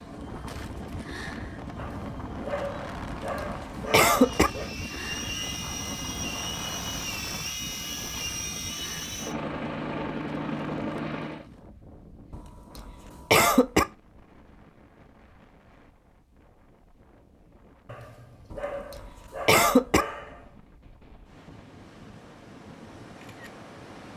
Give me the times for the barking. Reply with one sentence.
The barking can be heard from 1.8 to 4.7 s and from 17.9 to 20.5 s.